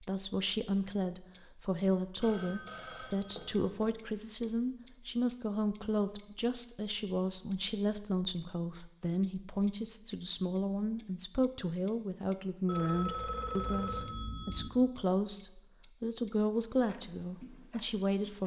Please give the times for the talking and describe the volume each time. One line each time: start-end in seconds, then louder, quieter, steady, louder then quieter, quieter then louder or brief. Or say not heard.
0.0-18.4 steady.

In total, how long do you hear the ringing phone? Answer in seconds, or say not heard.
4 s.